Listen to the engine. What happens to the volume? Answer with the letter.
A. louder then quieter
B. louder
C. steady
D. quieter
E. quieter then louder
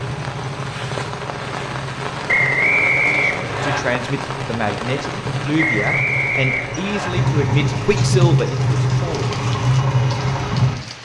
B.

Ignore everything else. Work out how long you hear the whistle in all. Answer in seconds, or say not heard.
3 s.